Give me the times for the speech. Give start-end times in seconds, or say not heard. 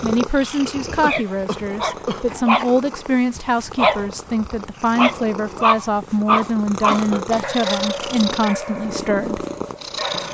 0.0-9.4.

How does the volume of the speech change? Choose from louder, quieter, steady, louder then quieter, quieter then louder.
steady.